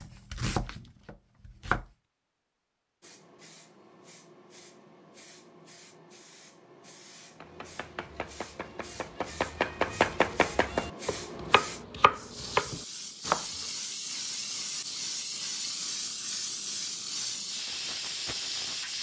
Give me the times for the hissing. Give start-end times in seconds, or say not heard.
3.0-18.9.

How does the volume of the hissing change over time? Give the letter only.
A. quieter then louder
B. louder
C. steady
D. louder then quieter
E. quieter
B.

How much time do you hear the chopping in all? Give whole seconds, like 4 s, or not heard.
8 s.